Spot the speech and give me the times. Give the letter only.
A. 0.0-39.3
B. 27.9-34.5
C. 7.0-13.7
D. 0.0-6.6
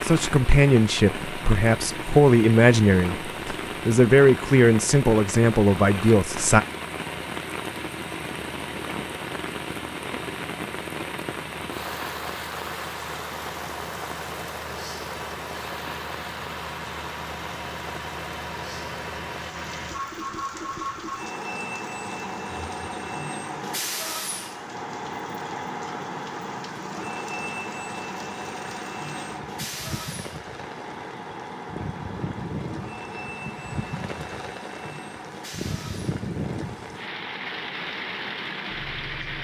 D.